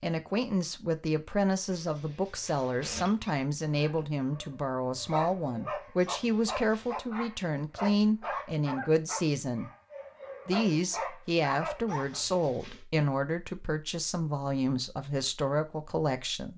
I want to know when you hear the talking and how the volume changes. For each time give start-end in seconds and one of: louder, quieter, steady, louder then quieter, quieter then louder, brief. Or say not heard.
0.0-9.7 steady
10.4-16.5 steady.